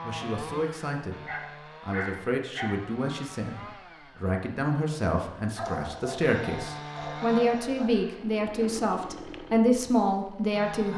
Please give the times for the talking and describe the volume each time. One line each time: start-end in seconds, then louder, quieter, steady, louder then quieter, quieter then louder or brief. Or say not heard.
0.0-1.1 brief
1.8-10.9 louder.